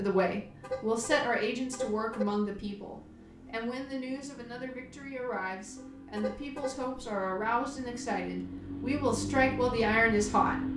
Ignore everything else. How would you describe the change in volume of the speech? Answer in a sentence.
The volume of the speech goes down, then up.